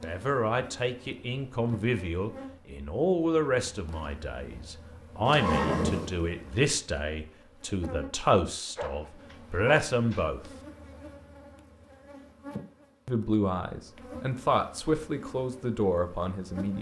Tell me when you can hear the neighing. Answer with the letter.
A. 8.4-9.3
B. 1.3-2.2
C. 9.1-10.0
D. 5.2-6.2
D.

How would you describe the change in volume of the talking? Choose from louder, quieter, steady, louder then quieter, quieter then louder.
steady.